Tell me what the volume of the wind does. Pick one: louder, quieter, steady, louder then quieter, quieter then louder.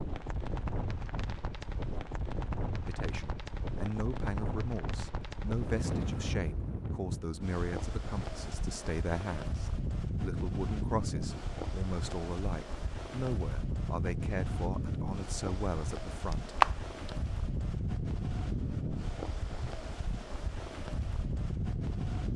steady.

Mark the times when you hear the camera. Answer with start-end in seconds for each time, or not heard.
16.3-17.1.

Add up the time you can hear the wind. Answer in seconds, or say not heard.
22 s.